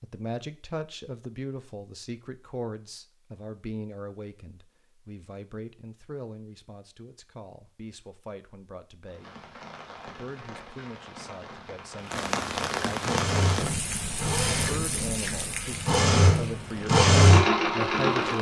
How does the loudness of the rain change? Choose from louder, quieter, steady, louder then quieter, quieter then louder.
louder then quieter.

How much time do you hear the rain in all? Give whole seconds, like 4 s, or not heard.
9 s.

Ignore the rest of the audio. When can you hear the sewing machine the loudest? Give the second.
17 s.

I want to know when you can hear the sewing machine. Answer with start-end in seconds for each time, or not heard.
13.0-18.3.